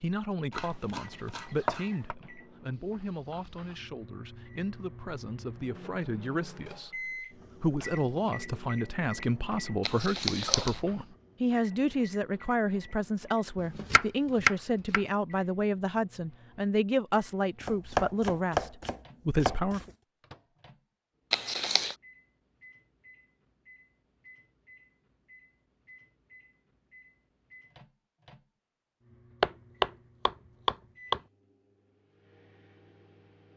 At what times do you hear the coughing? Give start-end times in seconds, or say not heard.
9.8-10.8, 21.3-21.9.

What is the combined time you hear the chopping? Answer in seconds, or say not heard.
7 s.